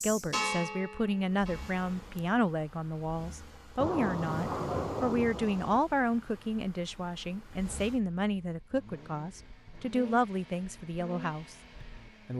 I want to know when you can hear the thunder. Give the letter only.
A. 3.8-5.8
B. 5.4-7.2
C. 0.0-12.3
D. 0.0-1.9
A.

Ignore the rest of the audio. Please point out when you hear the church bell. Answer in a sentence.
You can hear the church bell from 0.0 to 1.9 s.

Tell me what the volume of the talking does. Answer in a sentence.
The loudness of the talking stays about the same.